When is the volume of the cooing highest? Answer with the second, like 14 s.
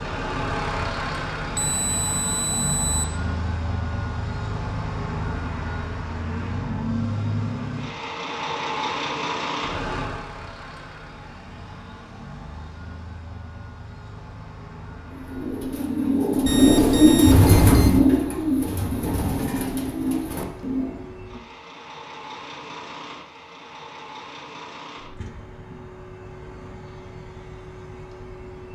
17 s.